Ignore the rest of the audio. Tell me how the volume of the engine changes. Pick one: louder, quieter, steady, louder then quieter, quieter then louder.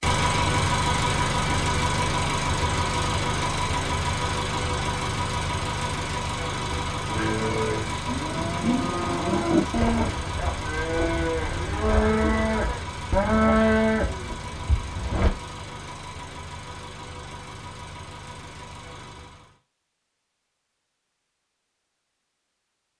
quieter.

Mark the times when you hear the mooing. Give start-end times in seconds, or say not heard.
7.1-15.3.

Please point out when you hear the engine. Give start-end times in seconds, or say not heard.
0.0-19.6.